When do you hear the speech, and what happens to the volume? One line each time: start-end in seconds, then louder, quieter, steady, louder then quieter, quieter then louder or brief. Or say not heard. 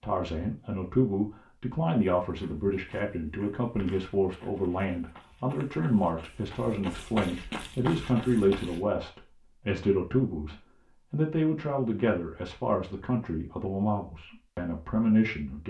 0.0-15.6 steady.